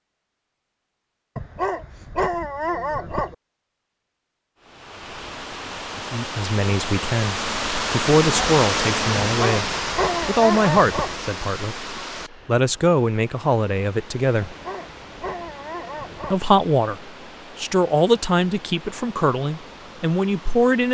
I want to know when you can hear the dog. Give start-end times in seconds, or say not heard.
1.4-3.4, 9.2-11.2, 14.4-16.4.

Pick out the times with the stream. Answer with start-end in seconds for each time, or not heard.
4.5-20.8.